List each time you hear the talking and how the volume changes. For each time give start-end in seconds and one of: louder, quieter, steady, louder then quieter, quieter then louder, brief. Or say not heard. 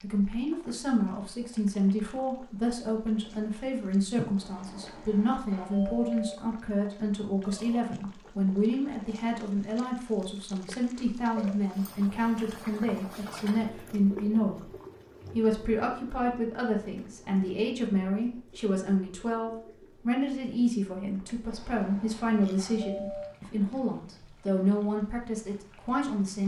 0.0-14.7 steady
15.3-26.4 steady.